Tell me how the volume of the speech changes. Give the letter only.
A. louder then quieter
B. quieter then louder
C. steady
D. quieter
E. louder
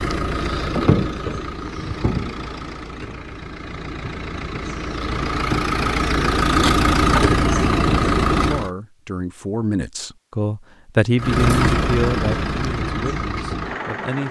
A.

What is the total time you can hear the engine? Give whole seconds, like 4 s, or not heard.
12 s.